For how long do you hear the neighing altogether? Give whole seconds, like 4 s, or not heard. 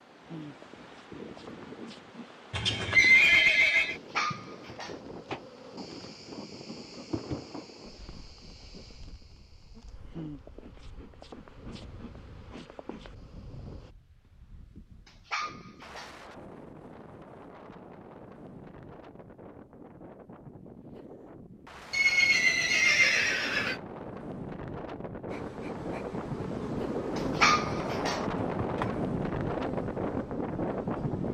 3 s.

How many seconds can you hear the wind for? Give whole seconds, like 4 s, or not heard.
31 s.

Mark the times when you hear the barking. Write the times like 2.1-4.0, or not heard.
3.9-5.0, 15.1-16.1, 27.1-28.2.